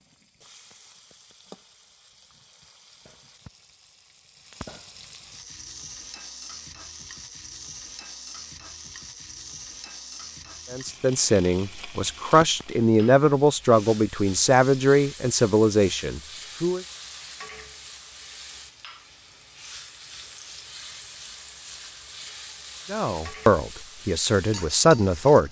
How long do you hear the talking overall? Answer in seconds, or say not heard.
9 s.